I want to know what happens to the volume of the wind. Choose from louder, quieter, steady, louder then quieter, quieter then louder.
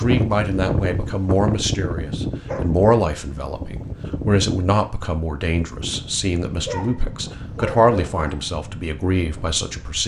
quieter.